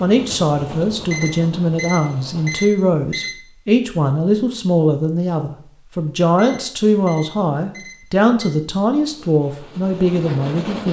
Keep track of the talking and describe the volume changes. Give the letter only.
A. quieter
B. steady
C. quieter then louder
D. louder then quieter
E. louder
B.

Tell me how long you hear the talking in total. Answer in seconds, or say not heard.
11 s.